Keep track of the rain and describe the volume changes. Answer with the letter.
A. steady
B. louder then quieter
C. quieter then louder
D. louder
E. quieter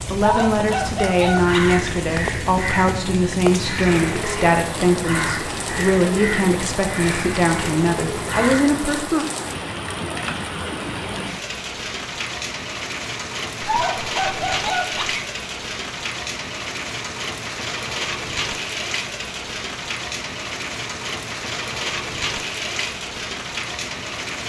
A.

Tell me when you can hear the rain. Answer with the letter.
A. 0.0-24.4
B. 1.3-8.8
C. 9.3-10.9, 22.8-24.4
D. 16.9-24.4
A.